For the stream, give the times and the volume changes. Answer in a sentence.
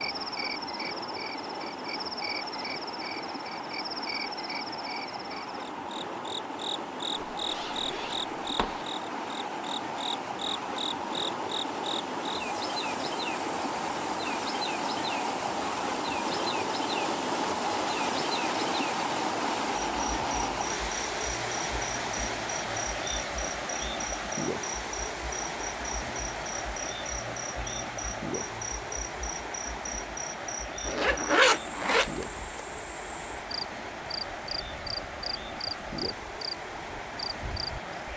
The stream can be heard from 0.0 to 38.1 s, getting louder then quieter.